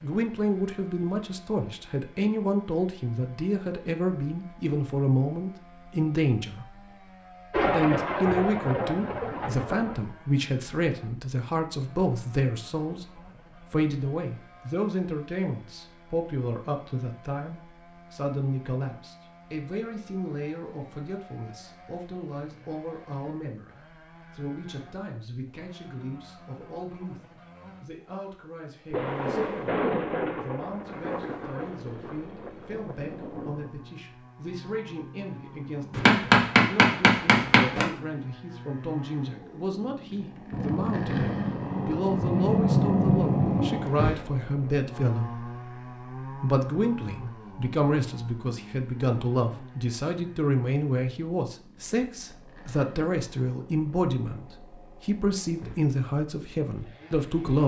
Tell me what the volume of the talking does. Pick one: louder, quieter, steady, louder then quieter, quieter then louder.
quieter then louder.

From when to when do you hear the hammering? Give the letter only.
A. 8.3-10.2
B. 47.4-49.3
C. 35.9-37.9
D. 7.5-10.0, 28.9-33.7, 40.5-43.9
C.